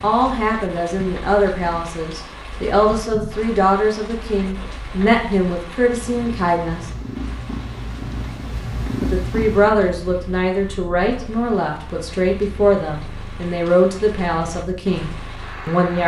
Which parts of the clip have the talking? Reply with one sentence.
The talking can be heard from 0.0 to 6.9 s and from 9.0 to 16.0 s.